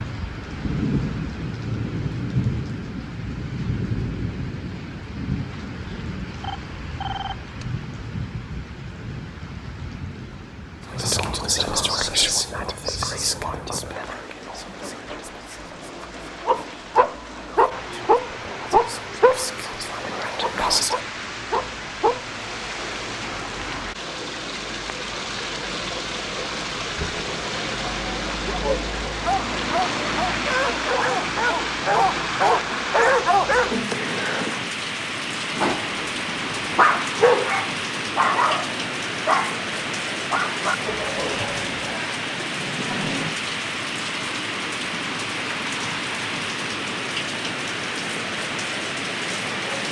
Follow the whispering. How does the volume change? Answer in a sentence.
The volume of the whispering goes down, then up.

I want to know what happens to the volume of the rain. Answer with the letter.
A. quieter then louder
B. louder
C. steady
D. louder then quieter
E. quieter
A.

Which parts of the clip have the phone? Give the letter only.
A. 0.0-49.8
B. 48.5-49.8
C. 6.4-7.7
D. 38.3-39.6
C.